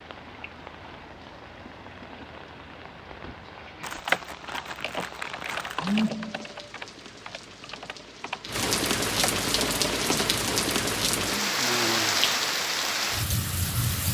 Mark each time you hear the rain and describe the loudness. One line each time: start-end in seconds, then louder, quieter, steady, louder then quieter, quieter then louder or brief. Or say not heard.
0.0-14.0 louder.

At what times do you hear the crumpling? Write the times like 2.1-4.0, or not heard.
3.8-6.1.